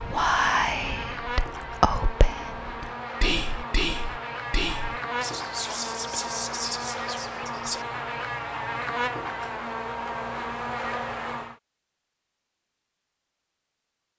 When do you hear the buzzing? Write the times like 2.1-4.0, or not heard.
0.0-11.6.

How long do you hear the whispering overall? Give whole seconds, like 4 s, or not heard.
8 s.